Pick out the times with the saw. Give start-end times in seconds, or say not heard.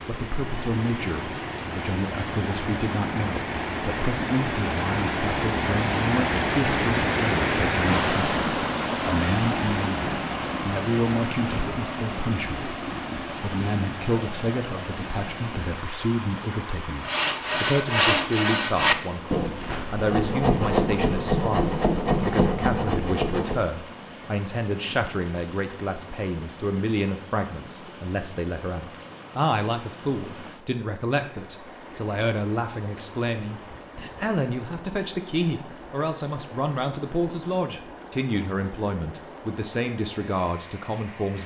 17.1-23.6.